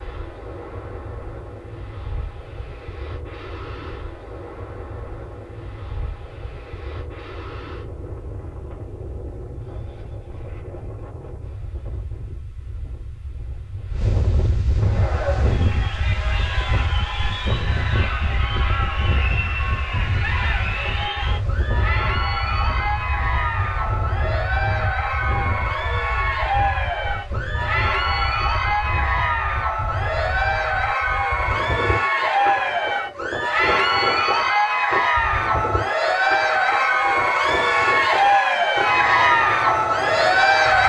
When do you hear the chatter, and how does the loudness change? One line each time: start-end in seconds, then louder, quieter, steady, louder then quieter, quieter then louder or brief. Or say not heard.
14.8-40.8 louder.